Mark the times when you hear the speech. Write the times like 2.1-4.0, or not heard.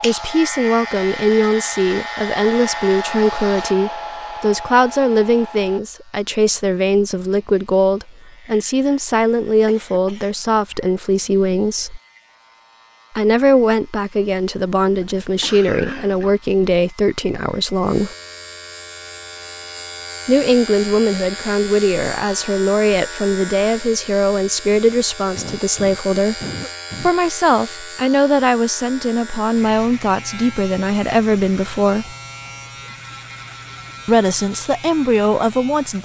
0.0-12.0, 13.2-18.1, 20.2-26.4, 27.0-32.1, 34.0-36.0.